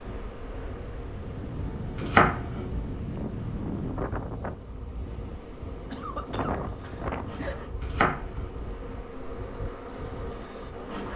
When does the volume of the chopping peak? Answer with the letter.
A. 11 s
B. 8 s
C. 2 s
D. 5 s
C.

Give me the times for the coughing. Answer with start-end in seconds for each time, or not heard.
5.9-7.7.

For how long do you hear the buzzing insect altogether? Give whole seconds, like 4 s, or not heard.
11 s.